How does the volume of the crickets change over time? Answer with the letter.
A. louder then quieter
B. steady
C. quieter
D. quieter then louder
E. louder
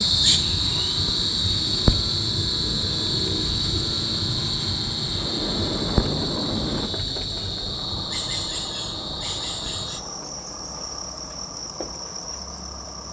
C.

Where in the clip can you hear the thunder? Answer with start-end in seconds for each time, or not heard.
5.2-6.9.